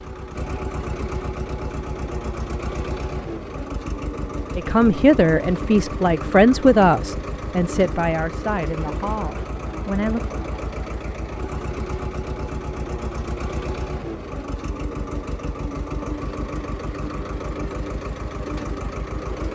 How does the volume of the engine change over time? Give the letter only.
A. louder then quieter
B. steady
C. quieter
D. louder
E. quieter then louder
B.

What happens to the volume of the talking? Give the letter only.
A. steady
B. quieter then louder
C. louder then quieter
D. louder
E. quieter
E.